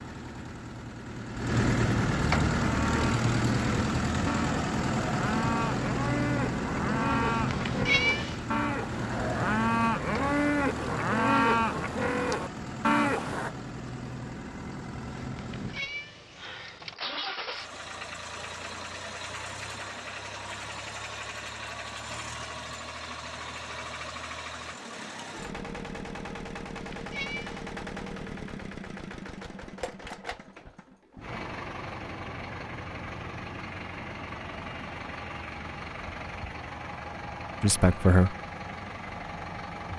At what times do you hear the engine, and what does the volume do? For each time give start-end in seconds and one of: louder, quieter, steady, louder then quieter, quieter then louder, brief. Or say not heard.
0.0-39.9 quieter.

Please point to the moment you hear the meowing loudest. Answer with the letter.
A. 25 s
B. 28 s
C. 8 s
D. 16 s
C.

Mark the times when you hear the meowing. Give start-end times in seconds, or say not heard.
7.5-8.4, 15.3-16.9, 26.8-27.6.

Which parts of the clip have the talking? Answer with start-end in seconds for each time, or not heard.
37.6-38.4.